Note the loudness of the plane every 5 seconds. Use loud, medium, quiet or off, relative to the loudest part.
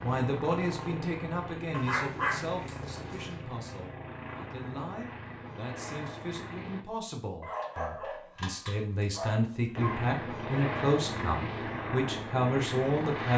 medium, medium, loud.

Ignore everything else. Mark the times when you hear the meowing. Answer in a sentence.
The meowing can't be heard in this clip.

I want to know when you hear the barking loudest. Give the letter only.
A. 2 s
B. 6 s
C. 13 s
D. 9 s
A.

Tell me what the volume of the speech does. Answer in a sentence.
The volume of the speech goes down, then up.